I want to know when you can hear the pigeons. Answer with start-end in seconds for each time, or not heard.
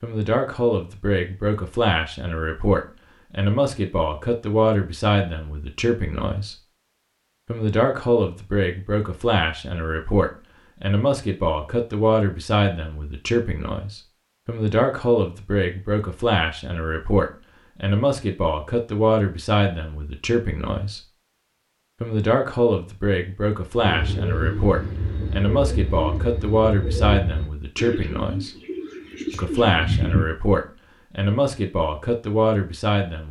23.8-30.2.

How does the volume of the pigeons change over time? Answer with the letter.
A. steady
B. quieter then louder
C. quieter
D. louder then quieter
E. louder
A.